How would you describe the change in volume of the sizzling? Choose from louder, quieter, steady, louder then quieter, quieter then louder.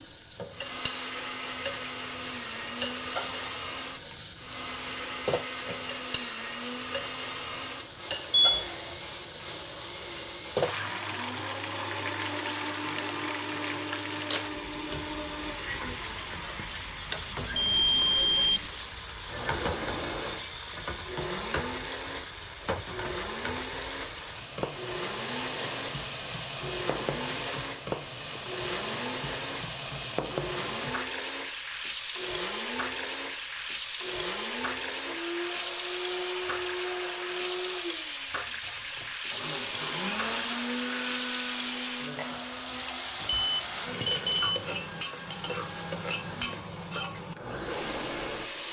steady.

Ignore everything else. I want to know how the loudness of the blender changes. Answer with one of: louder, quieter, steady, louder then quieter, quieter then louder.
steady.